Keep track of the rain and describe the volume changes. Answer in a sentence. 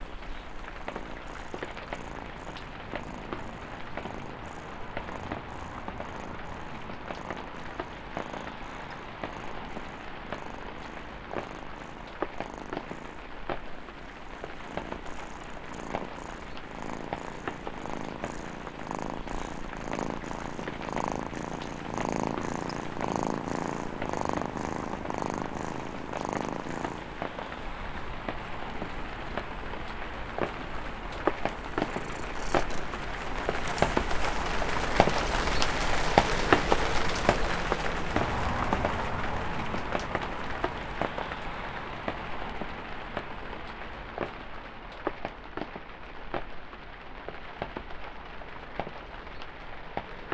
The volume of the rain goes up, then down.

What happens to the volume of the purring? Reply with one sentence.
The loudness of the purring goes up, then down.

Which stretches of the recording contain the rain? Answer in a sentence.
You can hear the rain from 0.0 to 50.2 s.